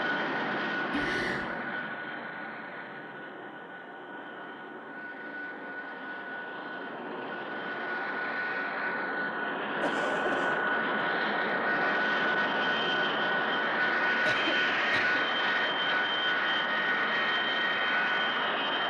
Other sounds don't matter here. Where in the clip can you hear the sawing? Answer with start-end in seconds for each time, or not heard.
not heard.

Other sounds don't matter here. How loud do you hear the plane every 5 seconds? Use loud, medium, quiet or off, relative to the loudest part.
medium, medium, loud, loud.